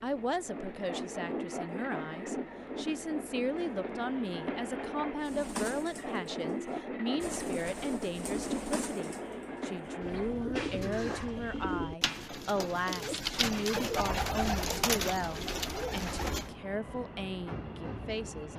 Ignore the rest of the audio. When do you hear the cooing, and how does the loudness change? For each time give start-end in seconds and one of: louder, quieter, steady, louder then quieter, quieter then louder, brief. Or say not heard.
5.2-16.6 louder.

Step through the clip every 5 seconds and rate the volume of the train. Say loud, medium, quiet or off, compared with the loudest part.
loud, loud, medium, medium.